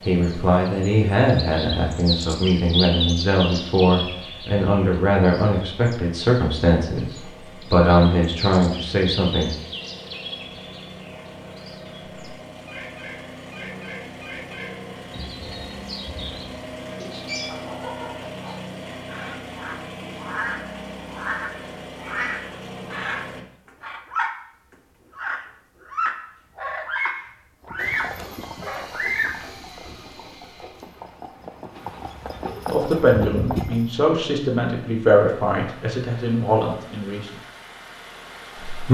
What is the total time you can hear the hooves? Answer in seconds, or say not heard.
6 s.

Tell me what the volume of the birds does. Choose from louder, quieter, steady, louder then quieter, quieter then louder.
quieter then louder.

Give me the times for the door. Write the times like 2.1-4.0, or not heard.
not heard.